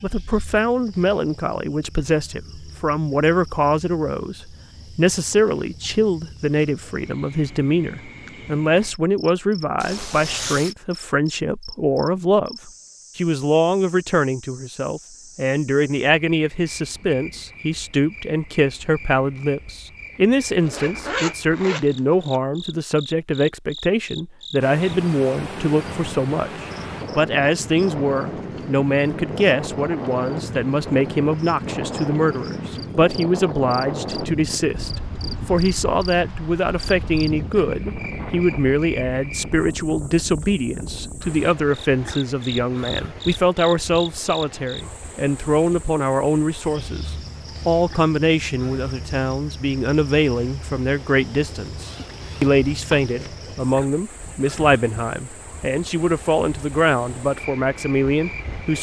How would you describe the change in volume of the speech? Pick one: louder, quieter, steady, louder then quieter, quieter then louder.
steady.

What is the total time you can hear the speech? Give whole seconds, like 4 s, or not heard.
59 s.